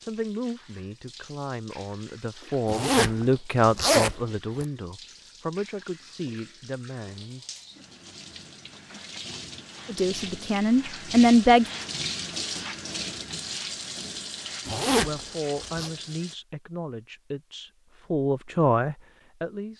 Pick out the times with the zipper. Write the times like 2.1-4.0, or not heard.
2.6-4.7, 14.7-15.9.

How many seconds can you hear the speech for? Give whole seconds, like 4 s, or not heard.
14 s.